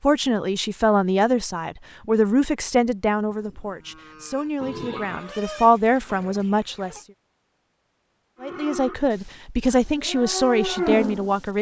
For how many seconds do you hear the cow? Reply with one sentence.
You can hear the cow for 5 seconds altogether.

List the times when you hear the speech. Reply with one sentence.
The speech can be heard from 0.0 to 7.0 s and from 8.4 to 11.5 s.